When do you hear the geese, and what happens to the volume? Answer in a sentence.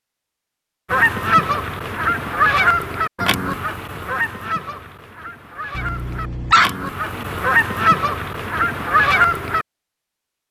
The geese can be heard from 0.9 to 9.7 s, getting quieter then louder.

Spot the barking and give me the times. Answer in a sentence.
The barking can be heard from 5.8 to 7.3 s.